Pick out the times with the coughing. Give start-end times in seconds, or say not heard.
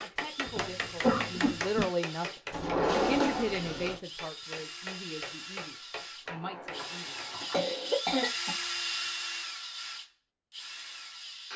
0.5-1.9, 7.5-8.6.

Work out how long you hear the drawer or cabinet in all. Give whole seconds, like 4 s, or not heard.
3 s.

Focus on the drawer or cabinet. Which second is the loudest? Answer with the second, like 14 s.
3 s.